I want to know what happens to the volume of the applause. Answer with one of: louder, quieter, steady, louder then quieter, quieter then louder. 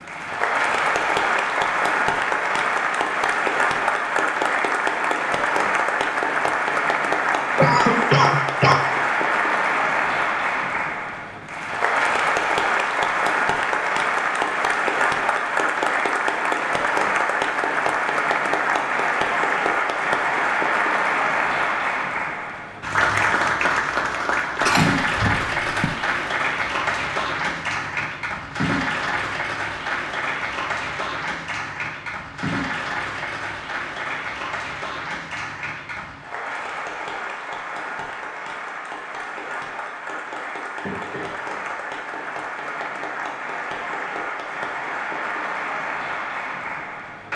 quieter.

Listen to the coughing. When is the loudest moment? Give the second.
8 s.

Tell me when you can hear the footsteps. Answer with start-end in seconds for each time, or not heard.
not heard.